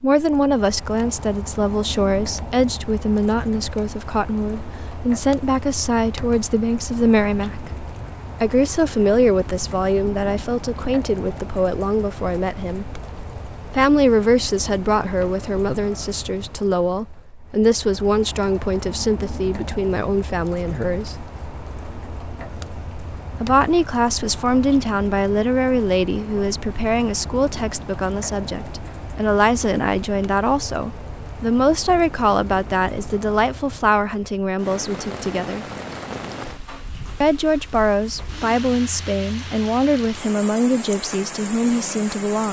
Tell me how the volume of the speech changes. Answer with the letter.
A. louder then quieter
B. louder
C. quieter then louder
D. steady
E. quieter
D.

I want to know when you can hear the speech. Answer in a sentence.
You can hear the speech from 0.0 to 7.7 s, from 8.4 to 13.0 s, from 13.7 to 21.2 s, from 23.4 to 35.6 s and from 37.2 to 42.4 s.